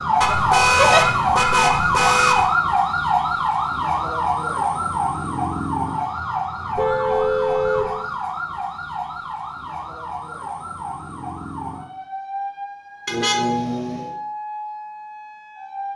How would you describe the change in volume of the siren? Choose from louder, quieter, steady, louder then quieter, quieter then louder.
quieter.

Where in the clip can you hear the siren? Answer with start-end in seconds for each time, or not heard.
0.0-15.9.